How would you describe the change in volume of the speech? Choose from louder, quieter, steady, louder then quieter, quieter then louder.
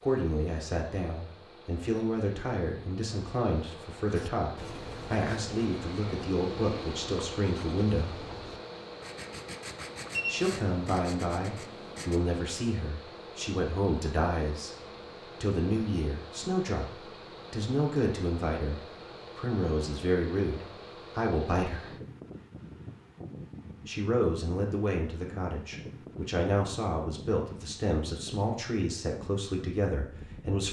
steady.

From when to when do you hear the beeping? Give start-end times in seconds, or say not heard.
9.8-10.4.